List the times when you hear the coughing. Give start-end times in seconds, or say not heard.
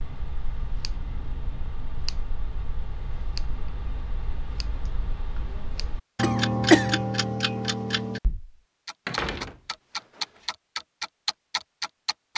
6.2-7.0.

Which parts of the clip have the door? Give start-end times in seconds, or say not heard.
9.1-10.4.